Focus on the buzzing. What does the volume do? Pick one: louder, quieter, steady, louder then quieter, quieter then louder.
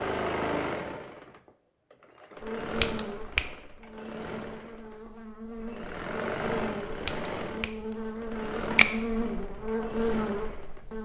louder.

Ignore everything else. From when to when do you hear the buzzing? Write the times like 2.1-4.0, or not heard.
2.4-10.9.